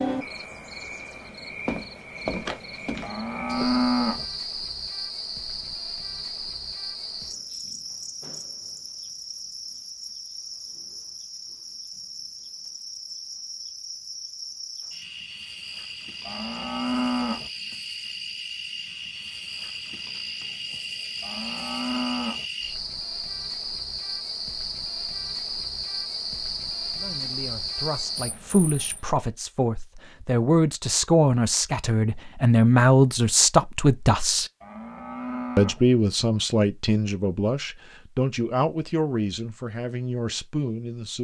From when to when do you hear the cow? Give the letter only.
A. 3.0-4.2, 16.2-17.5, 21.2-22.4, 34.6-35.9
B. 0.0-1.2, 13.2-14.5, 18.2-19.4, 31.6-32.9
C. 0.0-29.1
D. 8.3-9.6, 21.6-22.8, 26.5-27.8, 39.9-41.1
A.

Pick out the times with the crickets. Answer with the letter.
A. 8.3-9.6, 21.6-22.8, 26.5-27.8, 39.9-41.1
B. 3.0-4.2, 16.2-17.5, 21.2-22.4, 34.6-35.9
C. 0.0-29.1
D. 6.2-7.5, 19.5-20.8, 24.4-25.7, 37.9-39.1
C.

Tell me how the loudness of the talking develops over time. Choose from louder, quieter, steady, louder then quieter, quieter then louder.
louder then quieter.